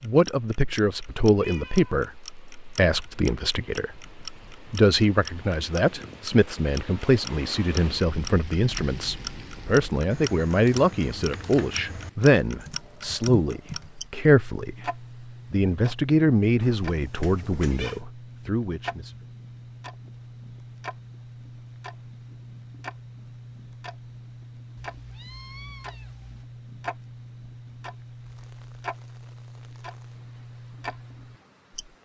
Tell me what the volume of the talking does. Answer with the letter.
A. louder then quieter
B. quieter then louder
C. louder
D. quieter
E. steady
E.